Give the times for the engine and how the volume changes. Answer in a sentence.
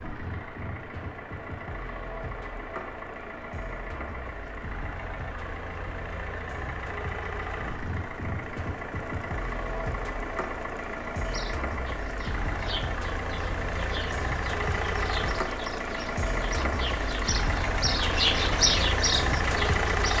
The engine can be heard from 0.0 to 20.1 s, getting louder.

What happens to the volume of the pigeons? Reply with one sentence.
The loudness of the pigeons goes up.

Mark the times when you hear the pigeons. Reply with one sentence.
The pigeons can be heard from 11.2 to 20.1 s.